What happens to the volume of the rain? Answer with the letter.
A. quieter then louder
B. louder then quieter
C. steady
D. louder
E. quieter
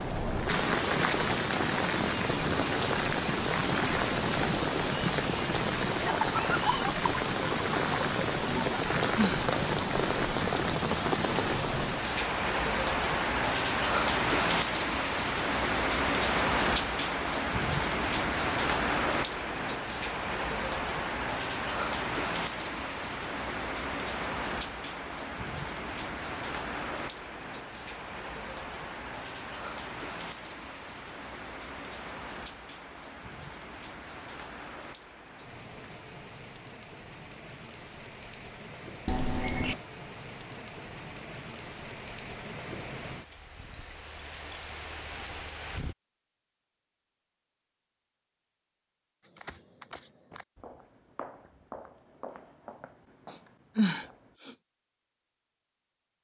E.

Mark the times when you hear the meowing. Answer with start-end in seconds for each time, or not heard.
39.0-39.8.